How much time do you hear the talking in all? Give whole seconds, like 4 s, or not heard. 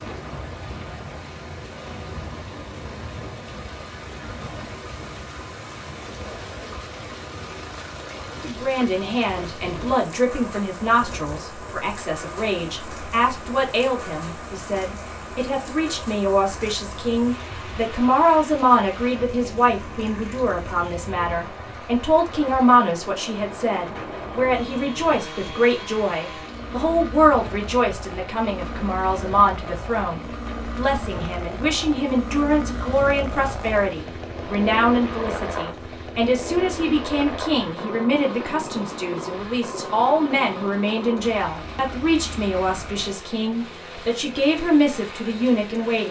38 s.